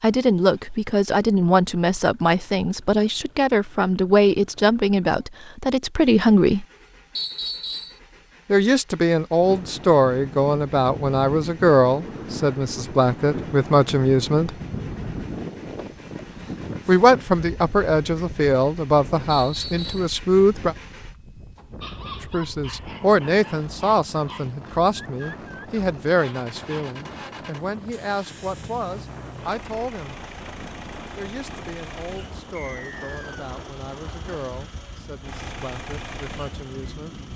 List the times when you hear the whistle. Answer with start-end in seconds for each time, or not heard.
7.2-8.0, 19.3-20.1, 32.5-33.4.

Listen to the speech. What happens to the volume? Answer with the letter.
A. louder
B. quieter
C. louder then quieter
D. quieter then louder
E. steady
B.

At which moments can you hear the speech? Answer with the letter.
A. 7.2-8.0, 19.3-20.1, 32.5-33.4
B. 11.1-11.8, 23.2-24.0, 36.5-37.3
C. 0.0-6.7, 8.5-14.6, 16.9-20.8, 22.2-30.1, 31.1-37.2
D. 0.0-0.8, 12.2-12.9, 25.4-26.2
C.